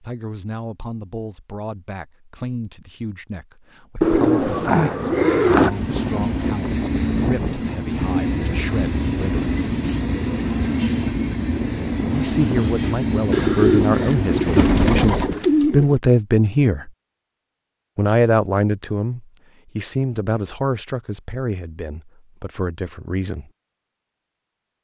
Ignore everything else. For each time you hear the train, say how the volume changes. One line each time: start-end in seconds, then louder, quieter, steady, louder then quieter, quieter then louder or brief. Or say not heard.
5.5-15.3 steady.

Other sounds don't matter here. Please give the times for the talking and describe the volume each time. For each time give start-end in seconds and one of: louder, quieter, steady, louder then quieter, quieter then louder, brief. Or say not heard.
0.0-9.8 steady
12.1-16.9 louder
17.9-23.5 quieter.